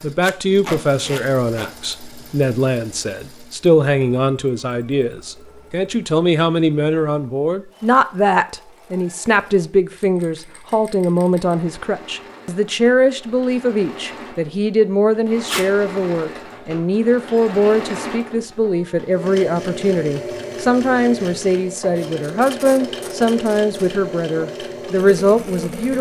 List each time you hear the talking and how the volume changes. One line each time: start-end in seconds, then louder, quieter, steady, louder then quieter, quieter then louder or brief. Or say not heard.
0.0-25.9 steady.